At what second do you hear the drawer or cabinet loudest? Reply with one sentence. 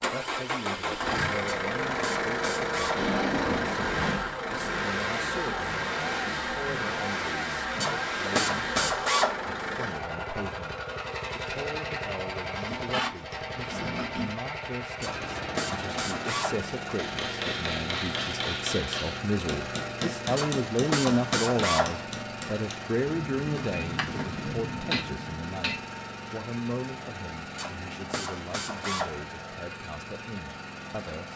The volume of the drawer or cabinet peaks at 3 seconds.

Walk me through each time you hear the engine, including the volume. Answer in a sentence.
You can hear the engine from 0.0 to 31.3 s, getting quieter.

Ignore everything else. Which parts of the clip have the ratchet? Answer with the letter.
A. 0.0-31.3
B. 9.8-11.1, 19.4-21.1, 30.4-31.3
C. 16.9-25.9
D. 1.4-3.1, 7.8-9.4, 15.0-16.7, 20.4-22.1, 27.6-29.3
D.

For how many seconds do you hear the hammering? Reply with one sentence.
The hammering can be heard for 9 seconds in total.